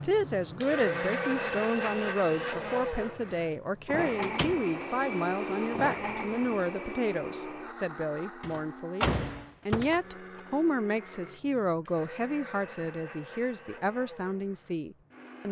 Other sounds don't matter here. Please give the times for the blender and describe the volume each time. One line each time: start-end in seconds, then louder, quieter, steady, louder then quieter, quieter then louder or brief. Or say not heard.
0.0-15.4 quieter.